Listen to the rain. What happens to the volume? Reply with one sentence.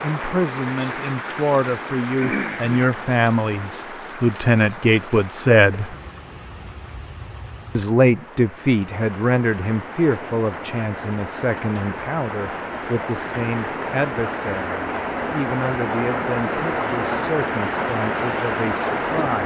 The volume of the rain goes down, then up.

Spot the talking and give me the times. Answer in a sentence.
You can hear the talking from 0.0 to 6.0 s and from 7.8 to 19.4 s.